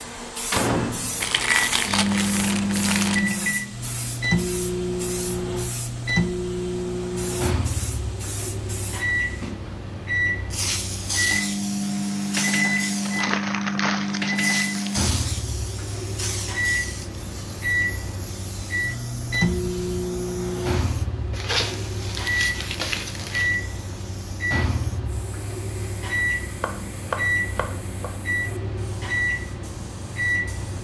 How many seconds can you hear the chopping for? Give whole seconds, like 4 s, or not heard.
2 s.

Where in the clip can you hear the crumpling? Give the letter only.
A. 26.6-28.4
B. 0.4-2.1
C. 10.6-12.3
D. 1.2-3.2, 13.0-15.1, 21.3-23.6
D.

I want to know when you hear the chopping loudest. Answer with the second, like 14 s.
27 s.